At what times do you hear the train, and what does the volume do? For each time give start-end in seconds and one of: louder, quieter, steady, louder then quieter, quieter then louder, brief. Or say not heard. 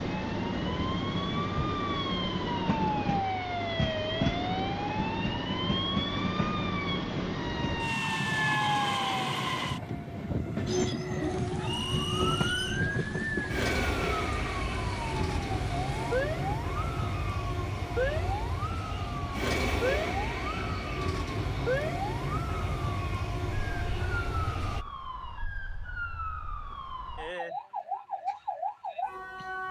0.0-24.9 steady.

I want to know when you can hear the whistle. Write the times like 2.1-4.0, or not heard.
11.6-12.8.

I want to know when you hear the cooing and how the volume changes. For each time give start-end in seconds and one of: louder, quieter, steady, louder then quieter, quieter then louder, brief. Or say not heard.
not heard.